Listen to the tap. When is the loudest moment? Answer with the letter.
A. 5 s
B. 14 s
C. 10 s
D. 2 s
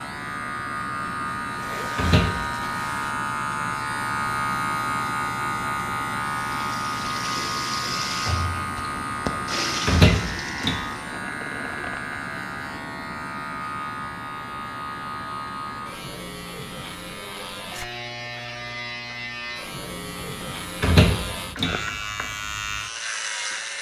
C.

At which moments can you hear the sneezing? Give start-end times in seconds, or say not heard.
not heard.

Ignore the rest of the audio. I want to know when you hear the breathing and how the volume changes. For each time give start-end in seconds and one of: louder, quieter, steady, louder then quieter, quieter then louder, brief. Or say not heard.
not heard.